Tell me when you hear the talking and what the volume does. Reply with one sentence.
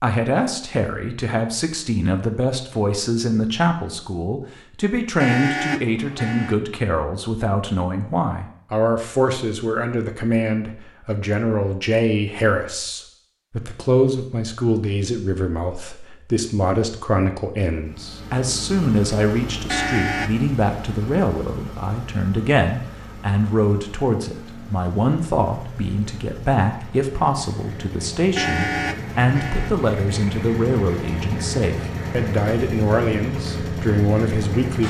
The talking can be heard from 0.0 to 34.8 s, at a steady volume.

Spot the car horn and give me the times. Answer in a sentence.
You can hear the car horn from 5.2 to 6.5 s, from 19.6 to 20.4 s and from 28.4 to 29.7 s.